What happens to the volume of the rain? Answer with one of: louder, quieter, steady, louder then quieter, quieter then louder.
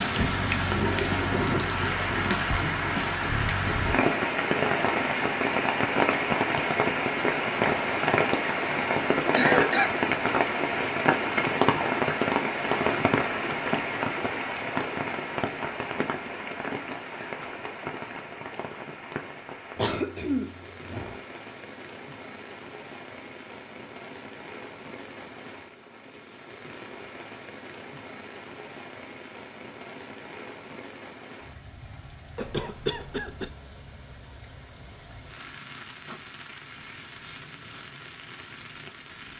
quieter.